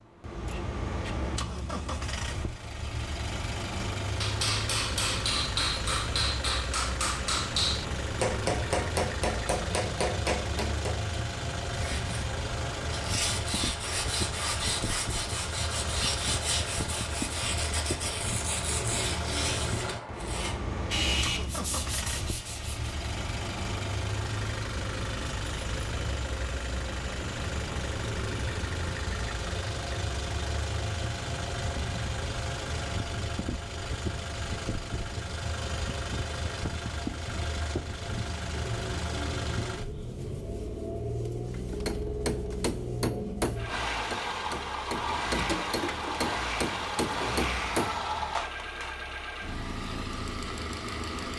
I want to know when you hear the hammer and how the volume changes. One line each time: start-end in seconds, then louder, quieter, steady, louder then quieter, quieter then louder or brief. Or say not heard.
3.8-11.2 steady
41.5-49.0 steady.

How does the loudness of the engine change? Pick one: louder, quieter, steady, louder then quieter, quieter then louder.
steady.